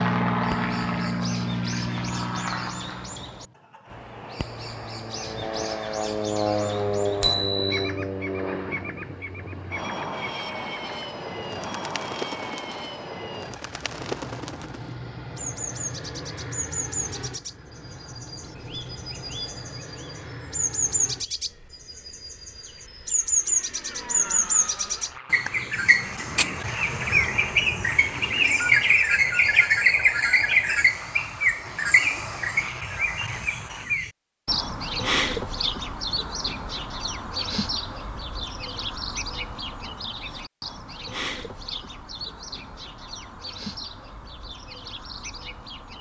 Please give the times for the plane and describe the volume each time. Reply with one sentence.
You can hear the plane from 0.0 to 33.9 s, getting quieter.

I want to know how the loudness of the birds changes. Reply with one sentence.
The volume of the birds goes up, then down.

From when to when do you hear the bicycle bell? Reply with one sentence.
You can hear the bicycle bell from 7.2 to 7.8 s.